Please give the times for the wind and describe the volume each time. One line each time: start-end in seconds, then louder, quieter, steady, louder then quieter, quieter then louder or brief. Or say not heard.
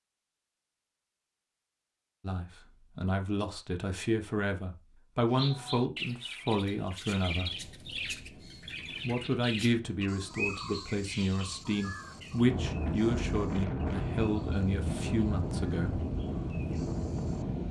7.3-17.6 louder.